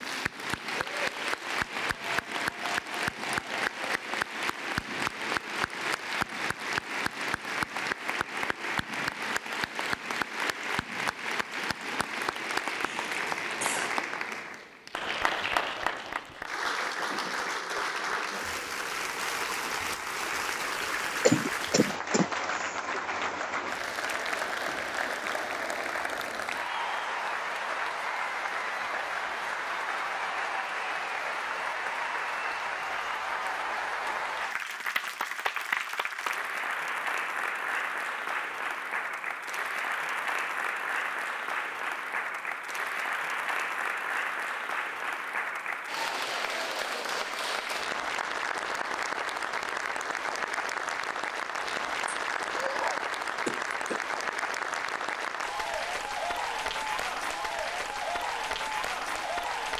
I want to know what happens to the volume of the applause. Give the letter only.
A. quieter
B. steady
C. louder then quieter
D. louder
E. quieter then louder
B.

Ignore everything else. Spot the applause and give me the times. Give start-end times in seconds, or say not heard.
0.0-59.7.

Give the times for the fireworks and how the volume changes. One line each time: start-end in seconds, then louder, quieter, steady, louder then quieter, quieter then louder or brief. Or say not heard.
not heard.